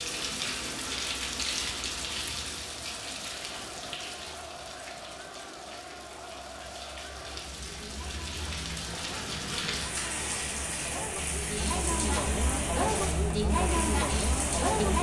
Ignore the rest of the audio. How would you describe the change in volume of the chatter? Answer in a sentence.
The volume of the chatter goes up.